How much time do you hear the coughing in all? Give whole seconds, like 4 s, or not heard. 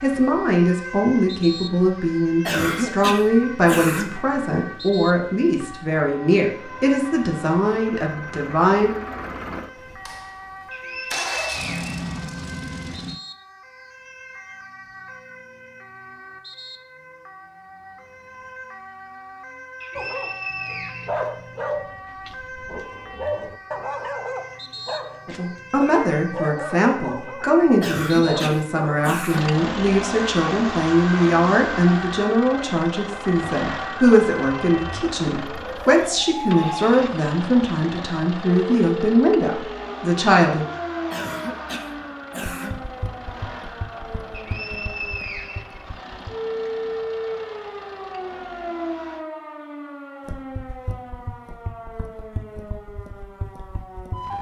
5 s.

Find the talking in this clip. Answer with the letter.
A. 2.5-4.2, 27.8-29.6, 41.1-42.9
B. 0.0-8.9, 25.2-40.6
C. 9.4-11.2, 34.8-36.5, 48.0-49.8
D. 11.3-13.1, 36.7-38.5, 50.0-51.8
B.